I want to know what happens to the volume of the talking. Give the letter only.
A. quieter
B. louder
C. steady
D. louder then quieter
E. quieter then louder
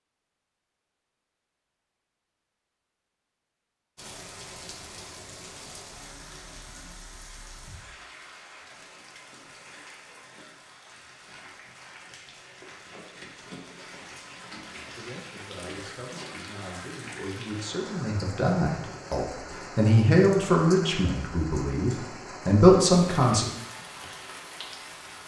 B.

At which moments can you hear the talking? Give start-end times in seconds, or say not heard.
14.8-23.4.